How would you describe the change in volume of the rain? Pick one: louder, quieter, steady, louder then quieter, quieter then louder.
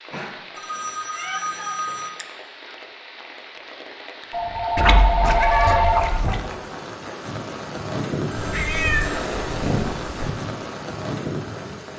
louder.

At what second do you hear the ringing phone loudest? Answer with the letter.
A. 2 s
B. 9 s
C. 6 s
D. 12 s
C.